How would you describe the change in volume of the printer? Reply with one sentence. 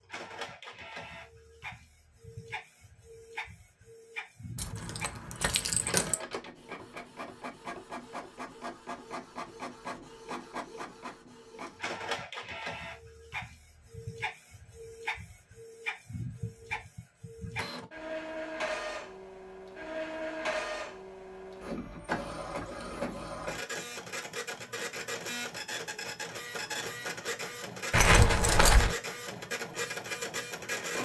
The loudness of the printer goes up.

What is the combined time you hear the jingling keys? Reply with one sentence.
You can hear the jingling keys for 3 seconds altogether.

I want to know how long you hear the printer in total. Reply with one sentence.
You can hear the printer for 31 seconds altogether.